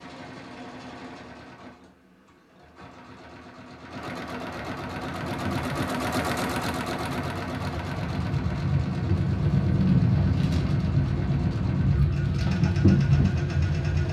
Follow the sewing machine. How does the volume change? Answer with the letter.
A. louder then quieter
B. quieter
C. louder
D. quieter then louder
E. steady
A.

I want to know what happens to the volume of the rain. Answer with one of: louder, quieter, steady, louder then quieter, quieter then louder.
louder.